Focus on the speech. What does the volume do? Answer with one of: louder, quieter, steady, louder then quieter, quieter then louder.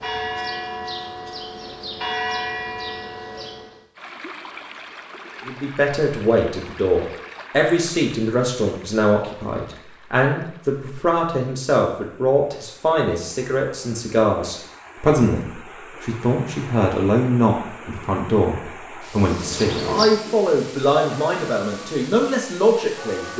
steady.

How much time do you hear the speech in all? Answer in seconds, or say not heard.
18 s.